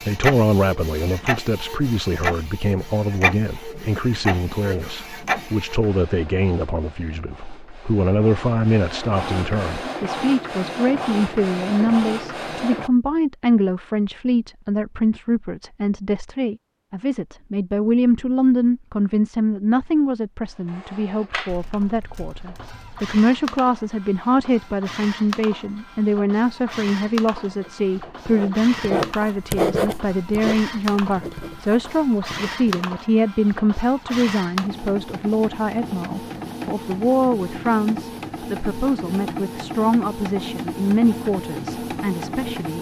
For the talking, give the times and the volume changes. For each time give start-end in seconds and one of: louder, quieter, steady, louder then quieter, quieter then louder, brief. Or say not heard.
0.0-42.7 steady.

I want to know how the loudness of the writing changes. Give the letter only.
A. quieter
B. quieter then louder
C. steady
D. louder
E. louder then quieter
E.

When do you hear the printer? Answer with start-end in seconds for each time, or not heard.
0.0-12.9, 20.4-42.7.